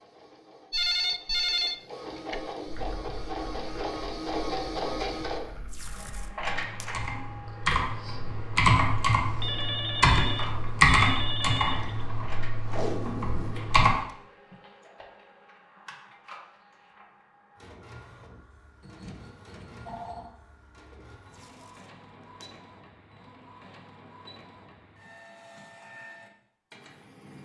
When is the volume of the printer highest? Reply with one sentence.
The loudest moment of the printer is at 5 seconds.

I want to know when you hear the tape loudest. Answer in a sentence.
The volume of the tape peaks at 13 seconds.